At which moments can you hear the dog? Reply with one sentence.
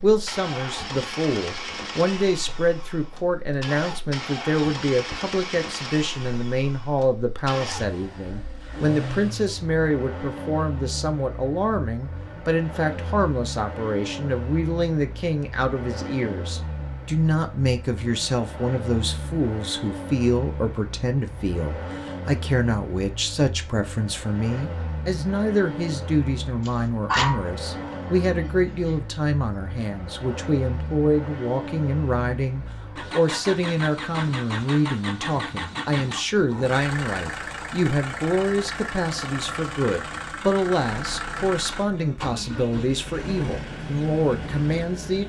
You can hear the dog from 26.6 to 28.4 s.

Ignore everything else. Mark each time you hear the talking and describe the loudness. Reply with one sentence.
You can hear the talking from 0.0 to 45.2 s, at a steady volume.